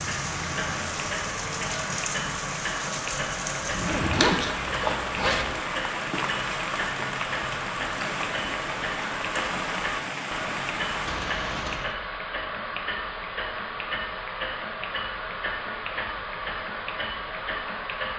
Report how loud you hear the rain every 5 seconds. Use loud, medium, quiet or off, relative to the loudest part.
loud, loud, loud, off.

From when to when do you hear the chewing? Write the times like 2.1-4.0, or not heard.
4.1-5.6.